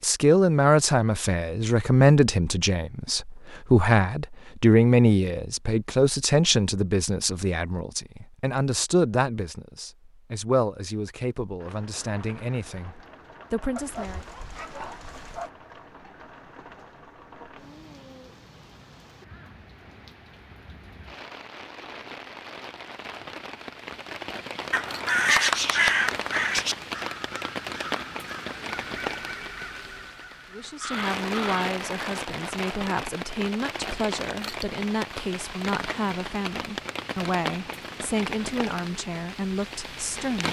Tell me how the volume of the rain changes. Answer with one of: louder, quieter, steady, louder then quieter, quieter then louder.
louder.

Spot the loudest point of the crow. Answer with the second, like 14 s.
25 s.